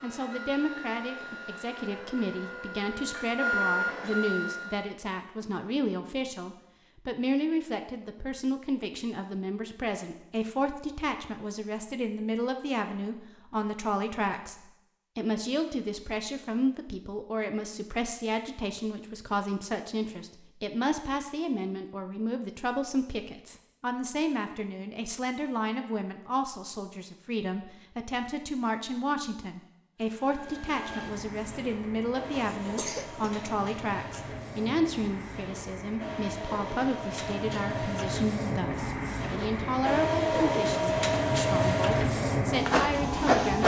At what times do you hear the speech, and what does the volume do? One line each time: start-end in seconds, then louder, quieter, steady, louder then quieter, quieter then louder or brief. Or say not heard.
0.0-14.6 steady
15.2-43.6 steady.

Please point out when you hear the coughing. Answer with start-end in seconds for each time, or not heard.
32.5-33.4.